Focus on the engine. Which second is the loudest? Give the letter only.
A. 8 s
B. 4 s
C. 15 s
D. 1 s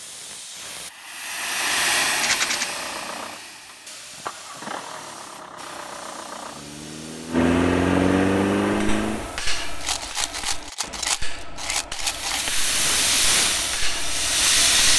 A.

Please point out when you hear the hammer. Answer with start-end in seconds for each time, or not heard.
8.7-14.9.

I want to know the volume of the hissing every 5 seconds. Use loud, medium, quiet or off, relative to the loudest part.
medium, quiet, loud.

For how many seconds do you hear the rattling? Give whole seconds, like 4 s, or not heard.
3 s.